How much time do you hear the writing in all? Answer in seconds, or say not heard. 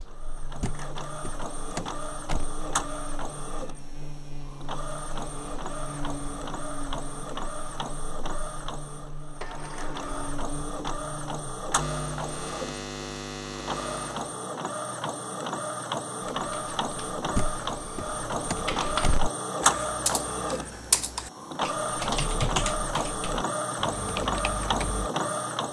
not heard.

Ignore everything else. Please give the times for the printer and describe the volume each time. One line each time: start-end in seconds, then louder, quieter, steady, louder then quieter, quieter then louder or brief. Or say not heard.
0.0-25.6 louder.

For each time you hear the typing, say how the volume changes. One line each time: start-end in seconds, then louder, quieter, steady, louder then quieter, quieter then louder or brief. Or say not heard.
16.3-25.1 louder then quieter.